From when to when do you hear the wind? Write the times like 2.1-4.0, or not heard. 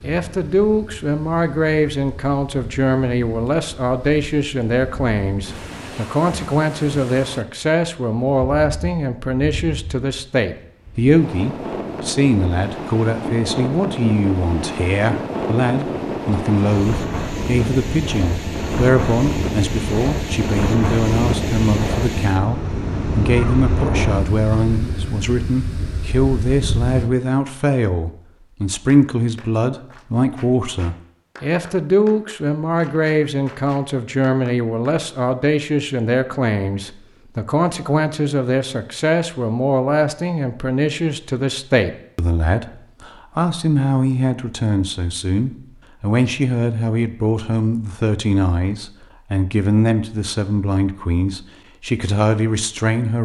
0.0-27.1.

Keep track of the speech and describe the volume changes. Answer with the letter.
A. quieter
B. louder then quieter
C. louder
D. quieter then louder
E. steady
E.